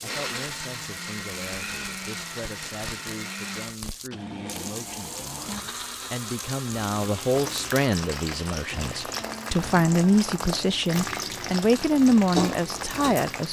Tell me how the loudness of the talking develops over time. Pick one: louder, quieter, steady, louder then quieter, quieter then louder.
louder.